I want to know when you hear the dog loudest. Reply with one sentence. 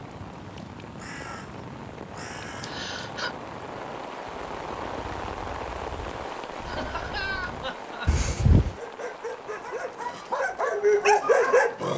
The volume of the dog peaks at 11 seconds.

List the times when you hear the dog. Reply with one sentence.
The dog can be heard from 8.6 to 11.9 s.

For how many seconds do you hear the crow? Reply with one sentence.
The crow can be heard for 8 seconds in total.